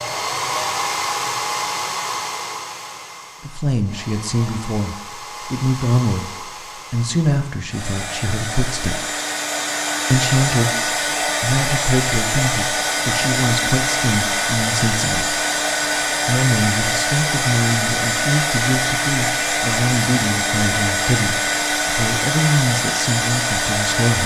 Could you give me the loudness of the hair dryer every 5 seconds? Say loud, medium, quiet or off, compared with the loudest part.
medium, medium, loud, loud, loud.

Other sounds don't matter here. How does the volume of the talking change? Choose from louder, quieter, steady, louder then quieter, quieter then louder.
steady.